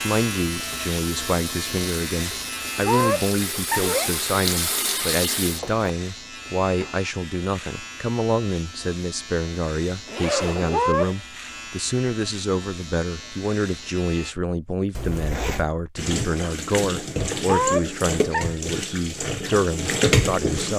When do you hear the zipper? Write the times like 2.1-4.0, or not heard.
3.7-4.2, 10.1-10.9, 14.9-15.7.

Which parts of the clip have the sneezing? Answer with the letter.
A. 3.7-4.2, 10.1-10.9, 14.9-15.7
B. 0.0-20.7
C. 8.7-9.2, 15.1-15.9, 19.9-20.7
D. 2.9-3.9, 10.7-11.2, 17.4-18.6
D.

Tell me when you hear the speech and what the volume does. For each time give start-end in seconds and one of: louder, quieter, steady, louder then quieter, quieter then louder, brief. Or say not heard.
0.0-20.7 steady.